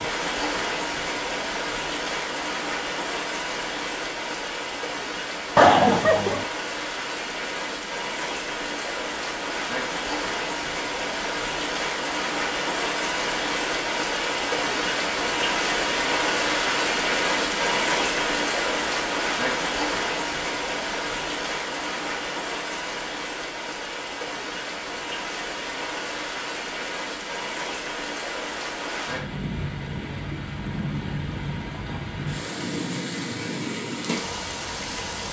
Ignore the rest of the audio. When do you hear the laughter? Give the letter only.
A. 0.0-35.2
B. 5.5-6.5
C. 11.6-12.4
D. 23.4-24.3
B.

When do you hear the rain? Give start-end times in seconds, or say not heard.
0.0-35.2.